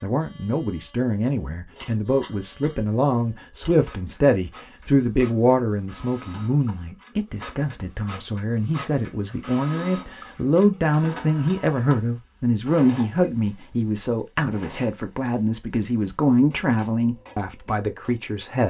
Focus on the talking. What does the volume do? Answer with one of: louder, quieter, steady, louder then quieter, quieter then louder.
steady.